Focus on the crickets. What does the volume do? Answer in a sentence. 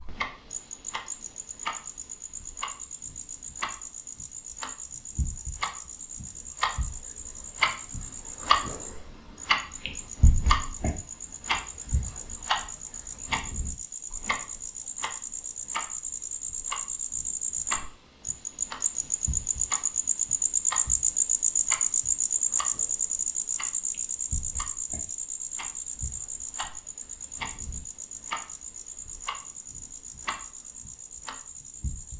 The volume of the crickets goes up, then down.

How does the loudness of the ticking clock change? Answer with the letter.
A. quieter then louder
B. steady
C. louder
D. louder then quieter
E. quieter
D.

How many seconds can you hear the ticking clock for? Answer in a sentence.
You can hear the ticking clock for 32 seconds altogether.